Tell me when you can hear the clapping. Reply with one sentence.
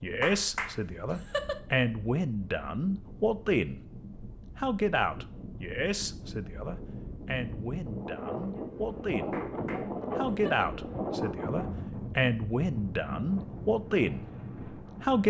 The clapping can be heard from 0.2 to 1.6 s and from 9.3 to 10.7 s.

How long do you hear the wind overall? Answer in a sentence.
The wind can be heard for 15 seconds in total.